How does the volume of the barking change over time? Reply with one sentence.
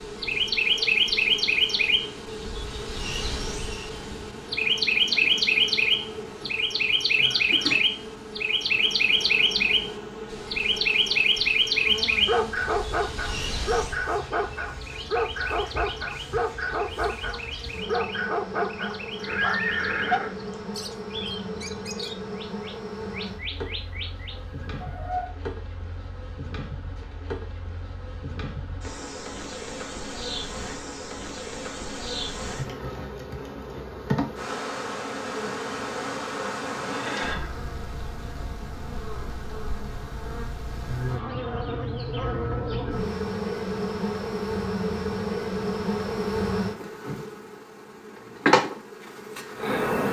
The volume of the barking stays about the same.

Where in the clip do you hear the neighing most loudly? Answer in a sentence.
The volume of the neighing peaks at 20 seconds.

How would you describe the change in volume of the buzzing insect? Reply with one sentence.
The loudness of the buzzing insect goes up.